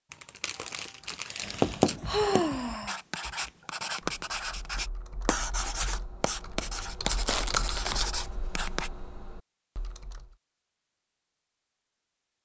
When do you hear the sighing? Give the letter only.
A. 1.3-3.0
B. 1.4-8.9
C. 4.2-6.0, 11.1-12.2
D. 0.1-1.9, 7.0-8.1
A.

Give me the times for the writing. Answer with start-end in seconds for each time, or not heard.
1.4-8.9.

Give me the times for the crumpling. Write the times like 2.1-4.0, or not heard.
0.1-1.9, 7.0-8.1.